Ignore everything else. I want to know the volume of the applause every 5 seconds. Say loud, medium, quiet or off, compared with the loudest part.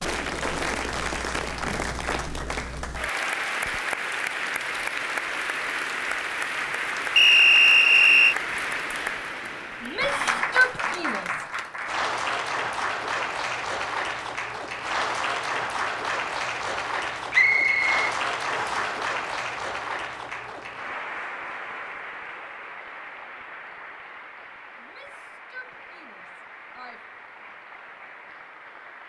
loud, loud, loud, loud, medium, quiet.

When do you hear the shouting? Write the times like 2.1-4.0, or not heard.
9.8-11.4, 24.8-27.0.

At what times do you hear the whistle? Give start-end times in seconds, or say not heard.
7.2-8.3, 17.3-18.9.